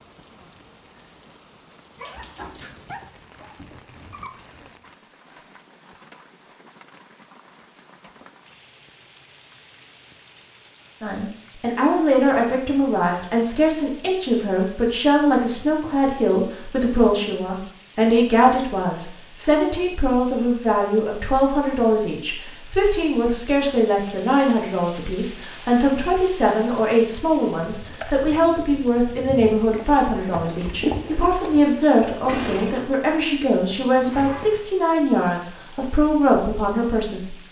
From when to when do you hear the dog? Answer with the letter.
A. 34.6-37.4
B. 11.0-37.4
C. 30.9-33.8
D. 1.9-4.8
D.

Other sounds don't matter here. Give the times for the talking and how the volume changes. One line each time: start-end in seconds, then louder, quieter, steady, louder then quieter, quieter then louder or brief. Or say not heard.
11.0-37.4 steady.